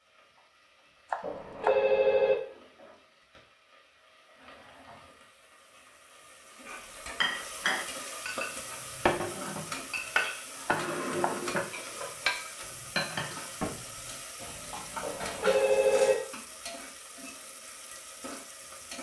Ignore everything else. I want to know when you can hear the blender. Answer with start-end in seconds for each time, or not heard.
not heard.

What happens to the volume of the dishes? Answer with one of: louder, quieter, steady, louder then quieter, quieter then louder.
quieter.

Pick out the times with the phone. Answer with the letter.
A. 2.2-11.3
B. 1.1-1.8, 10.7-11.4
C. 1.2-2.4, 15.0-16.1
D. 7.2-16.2
C.